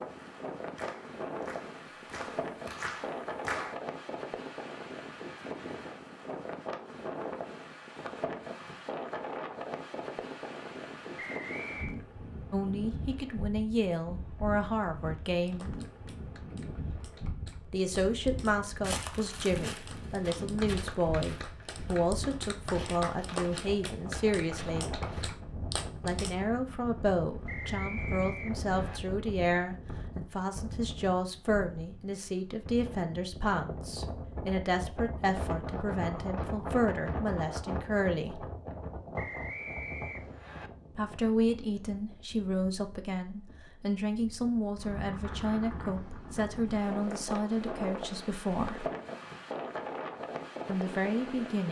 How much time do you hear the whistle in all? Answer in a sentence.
The whistle can be heard for 4 seconds in total.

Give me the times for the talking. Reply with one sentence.
You can hear the talking from 12.5 to 15.7 s, from 17.6 to 25.0 s, from 26.0 to 38.5 s, from 41.0 to 48.9 s and from 50.6 to 51.6 s.